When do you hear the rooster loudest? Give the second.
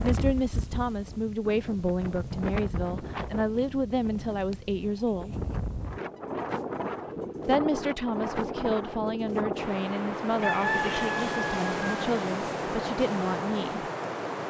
11 s.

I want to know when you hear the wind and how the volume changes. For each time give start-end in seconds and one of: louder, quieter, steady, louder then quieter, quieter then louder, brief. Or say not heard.
0.0-14.4 louder.